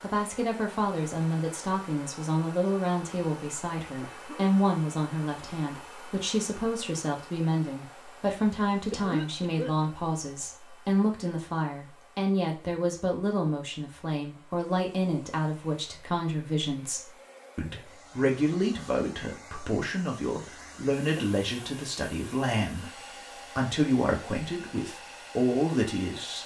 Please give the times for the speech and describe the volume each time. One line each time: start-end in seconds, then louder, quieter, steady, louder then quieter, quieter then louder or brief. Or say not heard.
0.0-26.4 steady.